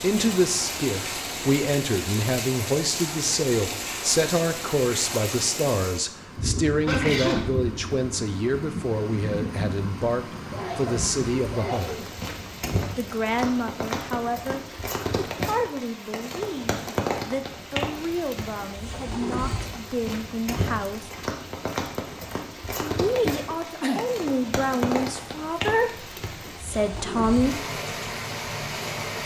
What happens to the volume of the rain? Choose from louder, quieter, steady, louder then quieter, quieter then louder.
steady.